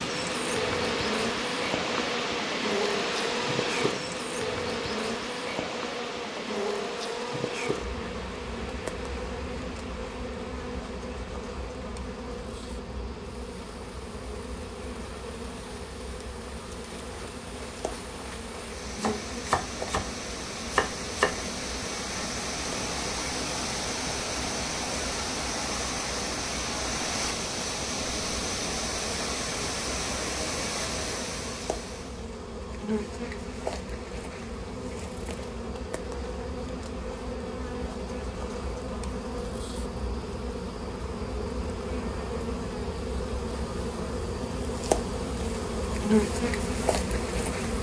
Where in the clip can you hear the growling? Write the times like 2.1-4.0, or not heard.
not heard.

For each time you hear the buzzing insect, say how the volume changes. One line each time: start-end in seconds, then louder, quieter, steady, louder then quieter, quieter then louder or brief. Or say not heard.
0.0-47.7 quieter then louder.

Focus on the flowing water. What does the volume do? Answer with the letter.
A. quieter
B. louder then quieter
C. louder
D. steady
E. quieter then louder
E.